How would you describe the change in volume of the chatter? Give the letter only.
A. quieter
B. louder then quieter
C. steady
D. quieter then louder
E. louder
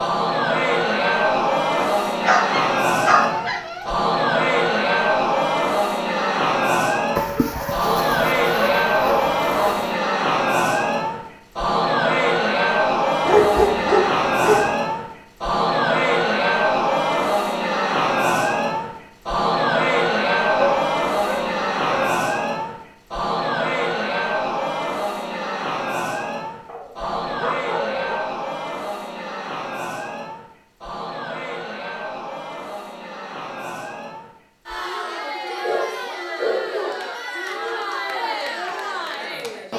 A.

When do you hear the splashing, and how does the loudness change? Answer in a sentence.
You can't hear the splashing here.